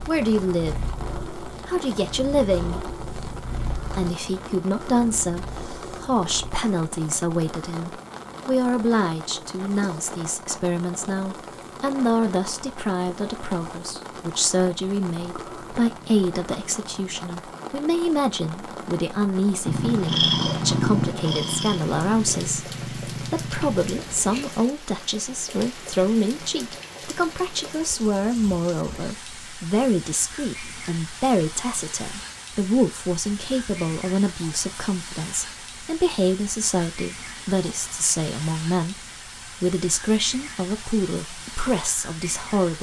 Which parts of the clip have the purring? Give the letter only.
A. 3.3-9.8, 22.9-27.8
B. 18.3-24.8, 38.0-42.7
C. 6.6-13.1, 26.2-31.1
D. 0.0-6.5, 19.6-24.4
D.